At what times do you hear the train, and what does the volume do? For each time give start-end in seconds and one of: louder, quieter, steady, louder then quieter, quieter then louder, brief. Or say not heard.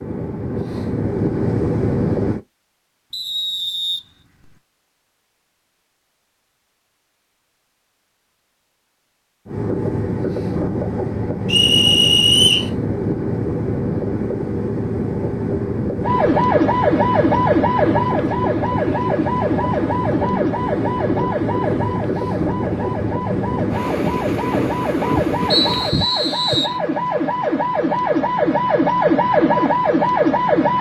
0.0-2.4 brief
9.4-26.1 steady.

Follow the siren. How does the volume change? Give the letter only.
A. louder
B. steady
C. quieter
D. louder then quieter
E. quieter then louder
E.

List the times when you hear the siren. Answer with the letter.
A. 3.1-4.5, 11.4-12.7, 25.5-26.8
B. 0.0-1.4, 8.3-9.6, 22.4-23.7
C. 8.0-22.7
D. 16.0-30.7
D.